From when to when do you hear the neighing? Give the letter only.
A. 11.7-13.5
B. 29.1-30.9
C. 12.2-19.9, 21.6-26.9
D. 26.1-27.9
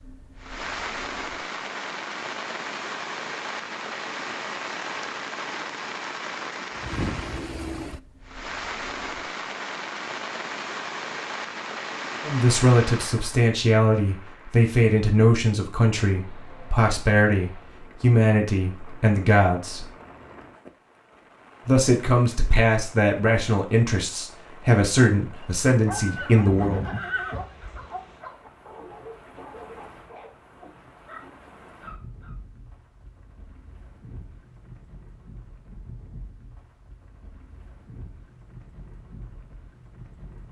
D.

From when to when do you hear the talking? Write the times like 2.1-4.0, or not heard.
12.2-19.9, 21.6-26.9.